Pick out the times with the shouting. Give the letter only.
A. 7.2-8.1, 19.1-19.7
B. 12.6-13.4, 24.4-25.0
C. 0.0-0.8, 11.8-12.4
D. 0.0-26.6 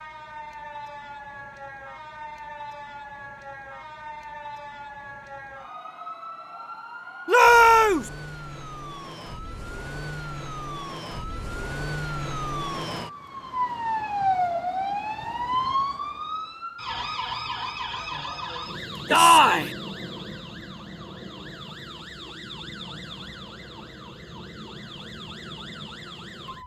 A.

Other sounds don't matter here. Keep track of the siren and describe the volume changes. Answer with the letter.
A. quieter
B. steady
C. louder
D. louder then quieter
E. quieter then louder
D.